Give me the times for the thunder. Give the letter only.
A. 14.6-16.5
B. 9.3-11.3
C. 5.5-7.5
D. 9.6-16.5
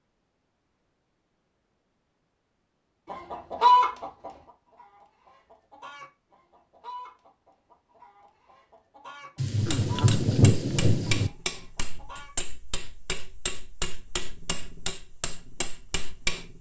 B.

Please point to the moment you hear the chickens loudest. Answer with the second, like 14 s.
4 s.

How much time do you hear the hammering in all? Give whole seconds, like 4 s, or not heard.
7 s.